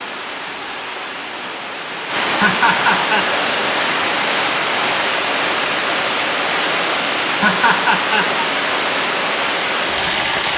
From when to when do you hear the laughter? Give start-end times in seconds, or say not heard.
2.4-3.2, 7.3-8.4.